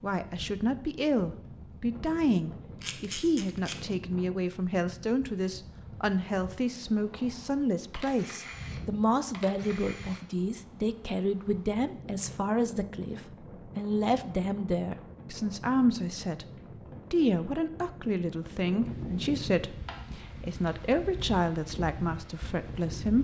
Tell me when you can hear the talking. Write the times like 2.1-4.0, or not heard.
0.0-16.4, 17.1-23.1.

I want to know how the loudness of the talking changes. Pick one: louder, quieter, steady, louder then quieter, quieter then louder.
steady.